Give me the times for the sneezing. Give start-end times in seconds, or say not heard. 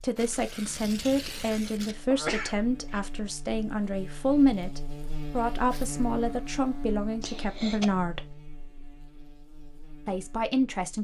2.0-3.0, 7.2-7.8.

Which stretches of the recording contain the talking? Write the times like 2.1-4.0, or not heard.
0.0-8.3, 10.1-10.9.